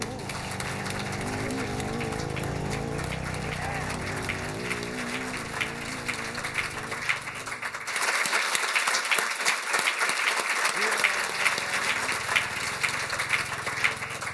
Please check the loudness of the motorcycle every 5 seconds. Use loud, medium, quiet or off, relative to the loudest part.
loud, medium, quiet.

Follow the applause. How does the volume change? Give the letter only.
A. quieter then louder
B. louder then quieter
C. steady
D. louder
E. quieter
D.